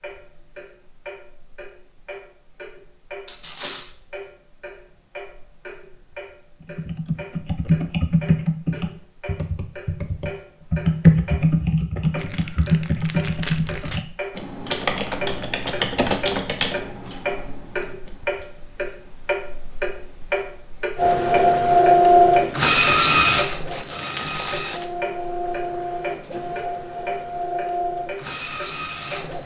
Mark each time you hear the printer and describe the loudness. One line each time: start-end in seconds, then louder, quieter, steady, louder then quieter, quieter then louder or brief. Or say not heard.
20.9-29.4 quieter.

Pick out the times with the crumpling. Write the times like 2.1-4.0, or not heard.
3.2-4.0, 12.2-14.1, 23.7-24.9.